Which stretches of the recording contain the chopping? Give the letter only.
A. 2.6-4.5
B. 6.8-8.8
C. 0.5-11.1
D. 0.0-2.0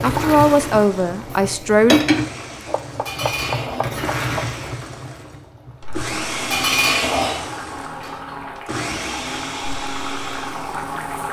A.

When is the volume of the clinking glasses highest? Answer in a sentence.
The volume of the clinking glasses peaks at 7 seconds.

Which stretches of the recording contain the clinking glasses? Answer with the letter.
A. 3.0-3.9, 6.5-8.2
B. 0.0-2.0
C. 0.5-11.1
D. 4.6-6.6
A.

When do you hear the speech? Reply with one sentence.
The speech can be heard from 0.0 to 2.0 s.